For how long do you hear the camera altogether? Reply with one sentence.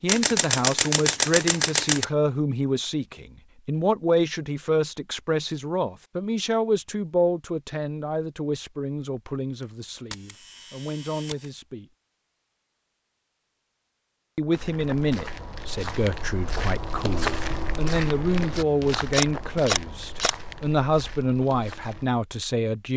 You can hear the camera for 5 seconds altogether.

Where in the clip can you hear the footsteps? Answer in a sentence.
The footsteps can be heard from 14.5 to 22.1 s.